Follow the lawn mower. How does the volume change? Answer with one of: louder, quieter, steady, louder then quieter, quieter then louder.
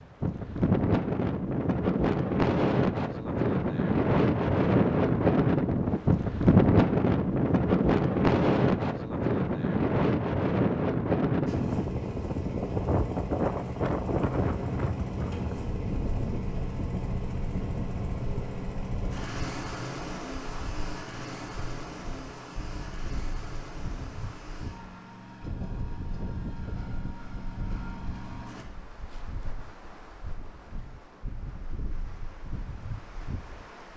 quieter.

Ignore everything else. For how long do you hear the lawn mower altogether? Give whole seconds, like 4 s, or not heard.
17 s.